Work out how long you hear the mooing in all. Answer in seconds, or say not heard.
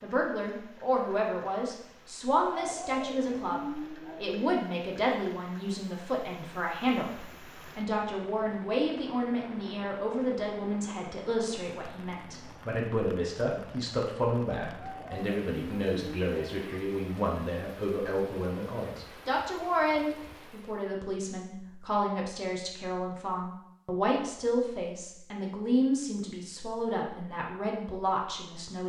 4 s.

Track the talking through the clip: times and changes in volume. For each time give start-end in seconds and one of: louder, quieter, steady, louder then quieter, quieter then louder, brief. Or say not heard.
0.0-28.8 steady.